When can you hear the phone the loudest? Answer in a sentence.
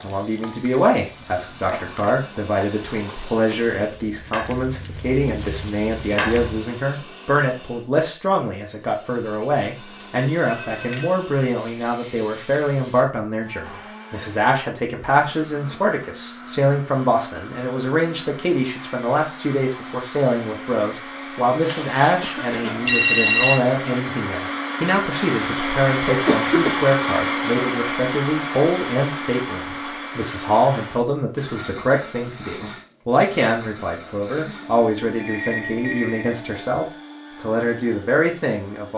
The loudest moment of the phone is at 23 seconds.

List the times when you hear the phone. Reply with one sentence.
You can hear the phone from 10.0 to 11.2 s, from 21.6 to 23.6 s and from 35.2 to 36.7 s.